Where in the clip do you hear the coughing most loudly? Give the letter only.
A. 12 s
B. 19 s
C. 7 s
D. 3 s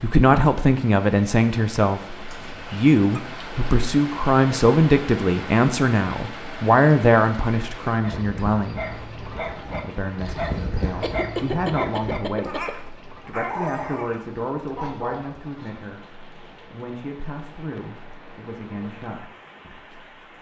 A.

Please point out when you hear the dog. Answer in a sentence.
You can hear the dog from 8.0 to 15.8 s.